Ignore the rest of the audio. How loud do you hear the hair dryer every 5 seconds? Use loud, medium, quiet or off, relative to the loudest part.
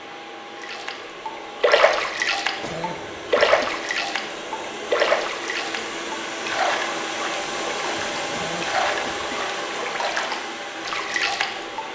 medium, loud, loud.